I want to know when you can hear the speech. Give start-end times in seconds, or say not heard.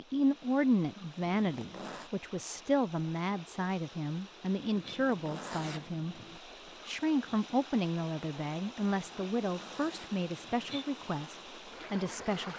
0.0-6.2, 6.8-12.5.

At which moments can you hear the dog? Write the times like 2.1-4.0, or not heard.
not heard.